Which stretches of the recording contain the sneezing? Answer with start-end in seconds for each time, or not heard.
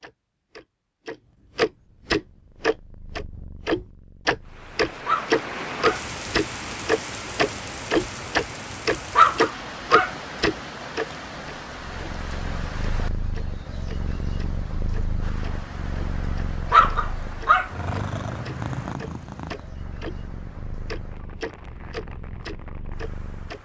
not heard.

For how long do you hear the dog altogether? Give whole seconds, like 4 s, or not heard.
3 s.